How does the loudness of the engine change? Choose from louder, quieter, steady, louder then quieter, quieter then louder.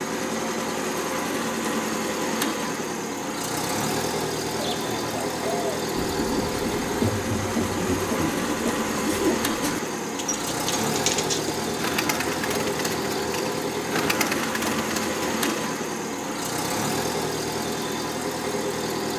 steady.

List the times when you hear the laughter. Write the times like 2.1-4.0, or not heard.
7.0-8.3.